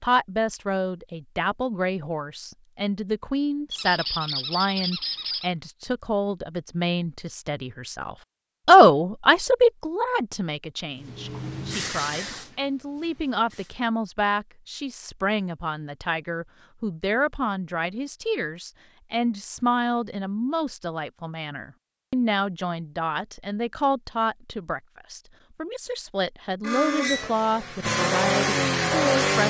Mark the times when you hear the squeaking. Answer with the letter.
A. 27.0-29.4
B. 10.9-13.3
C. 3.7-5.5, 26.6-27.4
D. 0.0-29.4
C.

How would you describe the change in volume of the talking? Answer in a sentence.
The loudness of the talking goes up, then down.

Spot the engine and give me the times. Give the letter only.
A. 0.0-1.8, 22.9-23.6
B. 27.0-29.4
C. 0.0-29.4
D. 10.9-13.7
B.